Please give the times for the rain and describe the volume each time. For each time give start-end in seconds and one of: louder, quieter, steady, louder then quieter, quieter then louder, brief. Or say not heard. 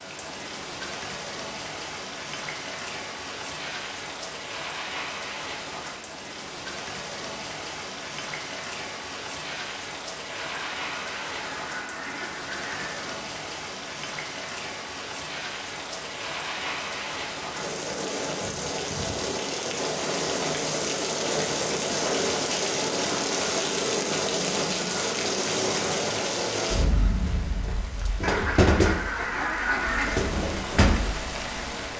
0.0-31.9 louder.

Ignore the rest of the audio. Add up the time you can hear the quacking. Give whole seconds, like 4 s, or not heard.
5 s.